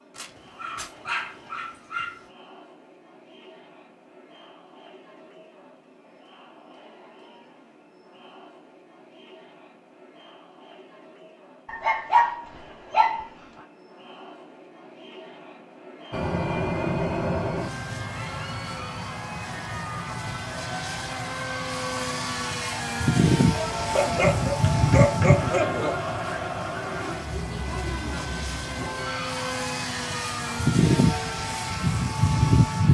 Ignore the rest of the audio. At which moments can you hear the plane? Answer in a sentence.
You can hear the plane from 16.1 to 32.9 s.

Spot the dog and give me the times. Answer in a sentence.
You can hear the dog from 0.1 to 2.2 s, from 11.7 to 13.2 s and from 23.9 to 25.9 s.